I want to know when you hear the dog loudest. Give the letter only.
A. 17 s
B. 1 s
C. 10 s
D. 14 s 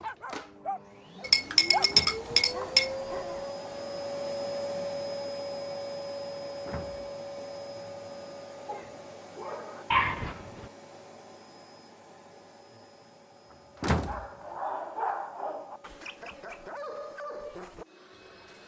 C.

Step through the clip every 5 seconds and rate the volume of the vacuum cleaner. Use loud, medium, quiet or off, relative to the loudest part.
loud, loud, quiet, quiet.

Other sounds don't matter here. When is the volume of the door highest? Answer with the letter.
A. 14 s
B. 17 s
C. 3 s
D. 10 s
A.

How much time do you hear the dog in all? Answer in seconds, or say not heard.
10 s.